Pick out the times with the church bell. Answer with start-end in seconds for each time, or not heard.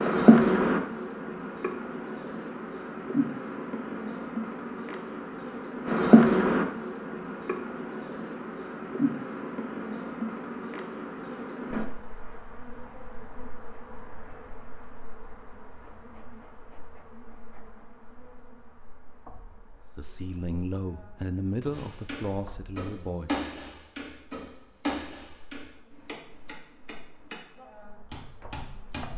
not heard.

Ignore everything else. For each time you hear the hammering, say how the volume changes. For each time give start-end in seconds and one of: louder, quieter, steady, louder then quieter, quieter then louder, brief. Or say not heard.
21.7-27.4 louder then quieter
28.1-29.1 brief.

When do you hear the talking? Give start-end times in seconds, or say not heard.
19.9-23.4.